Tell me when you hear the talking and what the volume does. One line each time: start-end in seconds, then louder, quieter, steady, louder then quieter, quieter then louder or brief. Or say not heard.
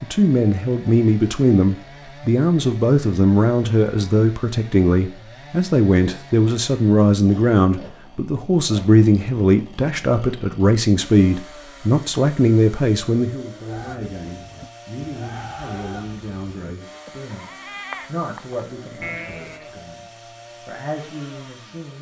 0.0-21.9 quieter.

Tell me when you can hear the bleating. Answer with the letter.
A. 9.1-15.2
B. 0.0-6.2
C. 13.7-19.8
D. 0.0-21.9
C.